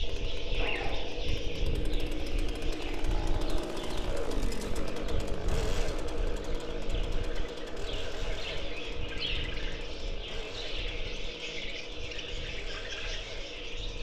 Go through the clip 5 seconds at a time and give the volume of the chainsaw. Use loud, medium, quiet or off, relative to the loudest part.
loud, loud, medium.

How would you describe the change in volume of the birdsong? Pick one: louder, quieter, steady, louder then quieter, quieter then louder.
quieter then louder.